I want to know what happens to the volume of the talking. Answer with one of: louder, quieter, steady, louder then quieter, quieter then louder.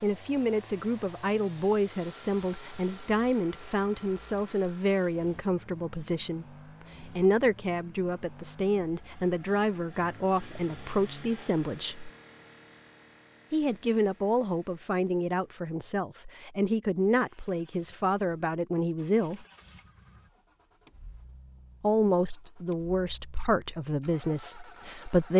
steady.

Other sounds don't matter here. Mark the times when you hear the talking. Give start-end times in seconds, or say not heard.
0.0-12.1, 13.5-19.4, 21.8-25.3.